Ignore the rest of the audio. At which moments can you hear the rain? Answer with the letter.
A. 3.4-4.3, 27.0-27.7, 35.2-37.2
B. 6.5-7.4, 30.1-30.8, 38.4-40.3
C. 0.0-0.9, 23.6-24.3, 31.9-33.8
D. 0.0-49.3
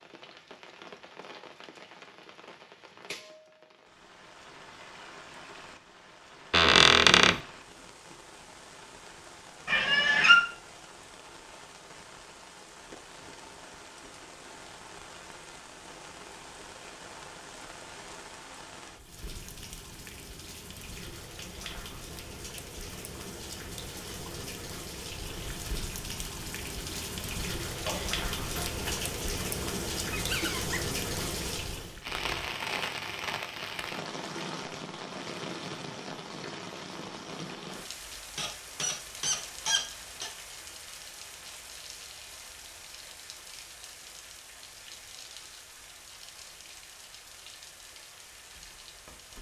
D.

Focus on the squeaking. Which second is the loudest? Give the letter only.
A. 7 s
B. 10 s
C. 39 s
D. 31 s
A.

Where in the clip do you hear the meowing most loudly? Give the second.
10 s.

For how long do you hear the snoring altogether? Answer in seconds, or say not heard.
not heard.